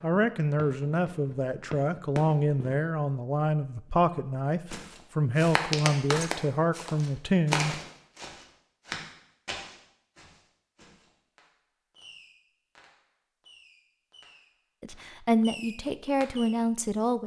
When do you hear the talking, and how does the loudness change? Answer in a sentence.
You can hear the talking from 0.0 to 7.8 s, at a steady volume; and briefly from 14.8 to 17.2 s.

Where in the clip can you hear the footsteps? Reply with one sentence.
The footsteps can be heard from 4.7 to 11.1 s.